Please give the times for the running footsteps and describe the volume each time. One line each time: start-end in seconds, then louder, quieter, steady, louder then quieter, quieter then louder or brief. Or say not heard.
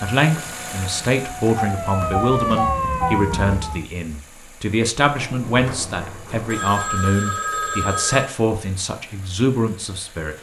not heard.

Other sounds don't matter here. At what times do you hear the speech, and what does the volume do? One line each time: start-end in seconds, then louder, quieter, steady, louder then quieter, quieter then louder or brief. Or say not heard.
0.0-10.3 steady.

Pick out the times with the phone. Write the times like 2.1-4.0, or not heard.
1.4-3.1, 6.5-8.3.